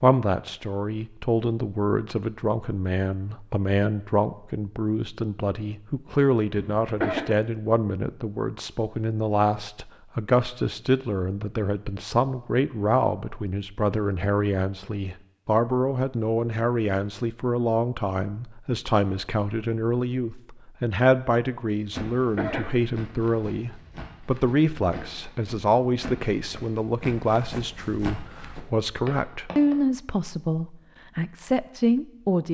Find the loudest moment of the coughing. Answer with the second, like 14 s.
7 s.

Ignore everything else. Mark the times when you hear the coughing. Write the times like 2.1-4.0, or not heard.
6.5-7.2, 21.9-22.8.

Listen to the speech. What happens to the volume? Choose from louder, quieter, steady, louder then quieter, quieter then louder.
steady.